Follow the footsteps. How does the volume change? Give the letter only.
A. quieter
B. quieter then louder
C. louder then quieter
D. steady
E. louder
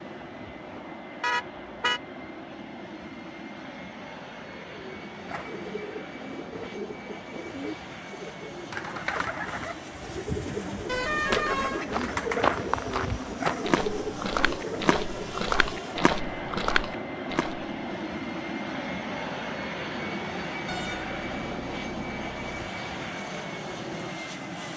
D.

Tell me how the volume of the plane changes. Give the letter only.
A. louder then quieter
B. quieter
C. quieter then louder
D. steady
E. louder
E.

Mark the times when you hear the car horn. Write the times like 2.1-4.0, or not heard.
1.2-2.0, 10.8-11.8, 20.6-22.4.